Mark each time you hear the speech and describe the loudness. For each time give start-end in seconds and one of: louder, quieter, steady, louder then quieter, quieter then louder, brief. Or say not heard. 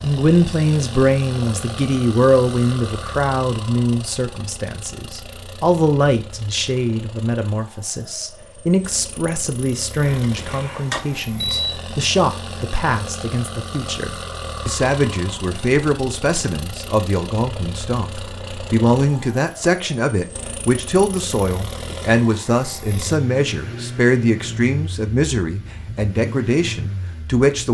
0.0-27.6 steady.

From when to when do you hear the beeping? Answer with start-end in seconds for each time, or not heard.
10.0-11.8.